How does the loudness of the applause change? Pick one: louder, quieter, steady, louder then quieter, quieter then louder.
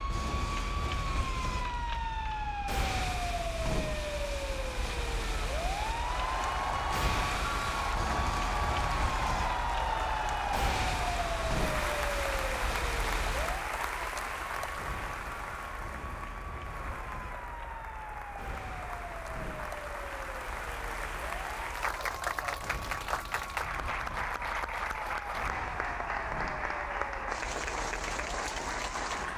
quieter then louder.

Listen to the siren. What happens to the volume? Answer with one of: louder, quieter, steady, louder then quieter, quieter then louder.
quieter.